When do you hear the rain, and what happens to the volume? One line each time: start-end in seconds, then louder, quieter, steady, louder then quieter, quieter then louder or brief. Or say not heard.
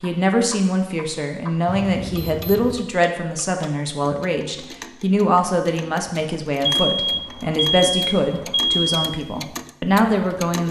not heard.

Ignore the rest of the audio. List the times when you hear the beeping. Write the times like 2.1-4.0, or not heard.
1.6-2.8, 6.7-9.1.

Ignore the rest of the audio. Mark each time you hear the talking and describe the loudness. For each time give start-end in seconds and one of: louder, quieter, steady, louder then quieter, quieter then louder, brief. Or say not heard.
0.0-10.6 steady.